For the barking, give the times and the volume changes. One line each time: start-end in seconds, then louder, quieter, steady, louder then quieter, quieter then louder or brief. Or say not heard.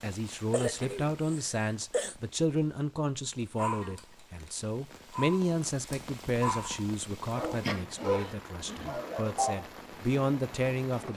3.5-10.3 louder.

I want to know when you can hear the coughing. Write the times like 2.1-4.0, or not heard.
0.5-2.1, 7.6-8.3.